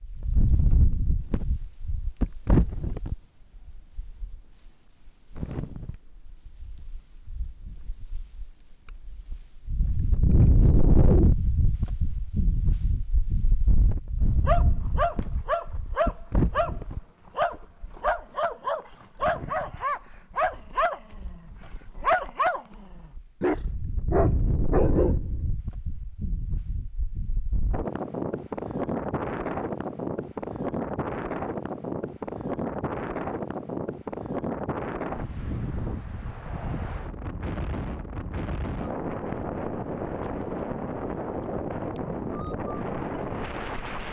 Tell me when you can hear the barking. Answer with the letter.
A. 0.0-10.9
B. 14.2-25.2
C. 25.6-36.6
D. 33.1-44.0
B.